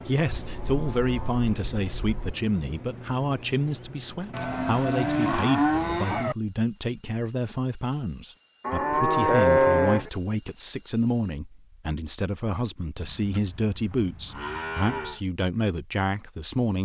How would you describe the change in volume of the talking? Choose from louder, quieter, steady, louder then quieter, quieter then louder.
steady.